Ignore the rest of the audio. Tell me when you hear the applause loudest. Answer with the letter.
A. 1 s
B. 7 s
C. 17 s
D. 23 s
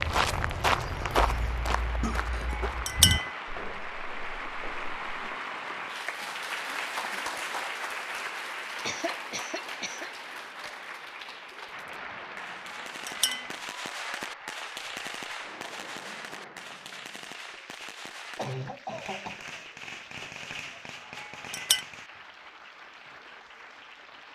B.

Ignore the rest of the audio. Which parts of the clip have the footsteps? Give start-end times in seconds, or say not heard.
0.0-5.1.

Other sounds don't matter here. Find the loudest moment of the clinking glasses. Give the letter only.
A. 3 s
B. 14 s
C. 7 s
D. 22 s
A.